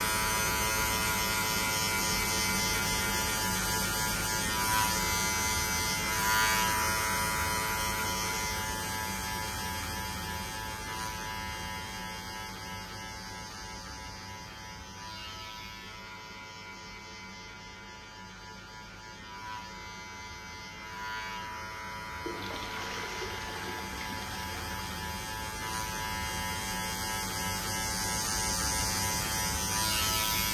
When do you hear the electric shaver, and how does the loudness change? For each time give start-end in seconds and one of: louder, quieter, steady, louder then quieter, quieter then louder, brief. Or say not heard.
0.0-30.4 quieter then louder.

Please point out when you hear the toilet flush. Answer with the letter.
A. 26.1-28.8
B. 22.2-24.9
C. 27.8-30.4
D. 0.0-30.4
B.